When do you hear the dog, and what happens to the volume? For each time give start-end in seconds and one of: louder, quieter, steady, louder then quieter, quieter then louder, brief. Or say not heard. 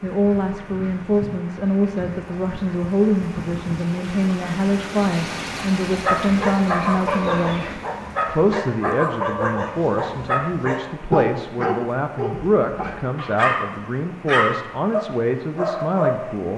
6.0-16.3 steady.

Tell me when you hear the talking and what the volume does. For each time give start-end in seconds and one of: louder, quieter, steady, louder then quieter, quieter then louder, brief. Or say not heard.
0.0-16.5 steady.